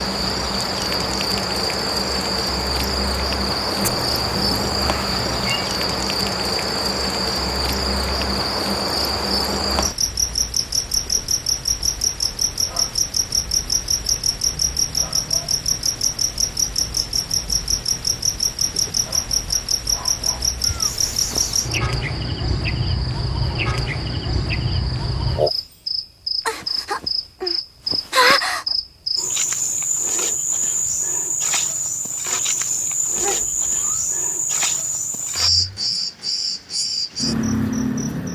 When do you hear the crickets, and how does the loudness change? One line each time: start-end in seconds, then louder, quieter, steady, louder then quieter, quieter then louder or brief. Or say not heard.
0.0-38.2 steady.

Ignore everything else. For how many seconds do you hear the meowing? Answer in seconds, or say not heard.
4 s.